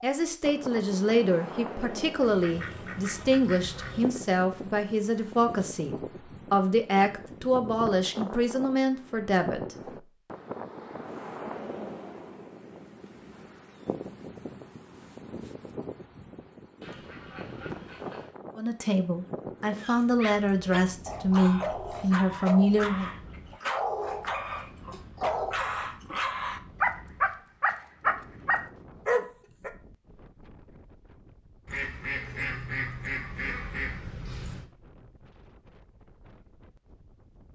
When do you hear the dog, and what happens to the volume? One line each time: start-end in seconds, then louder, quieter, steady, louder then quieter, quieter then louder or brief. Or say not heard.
19.8-29.7 louder.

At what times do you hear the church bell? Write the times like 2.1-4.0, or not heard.
not heard.